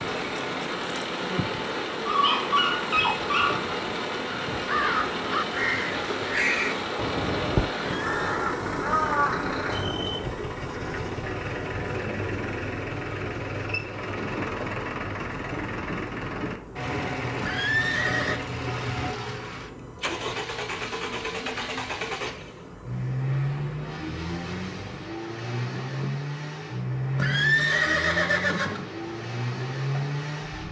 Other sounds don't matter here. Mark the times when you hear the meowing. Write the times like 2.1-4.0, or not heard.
not heard.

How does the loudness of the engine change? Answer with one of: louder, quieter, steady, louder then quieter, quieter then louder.
steady.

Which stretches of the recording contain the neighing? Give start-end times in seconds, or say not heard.
7.9-8.3, 17.4-18.4, 27.1-28.9.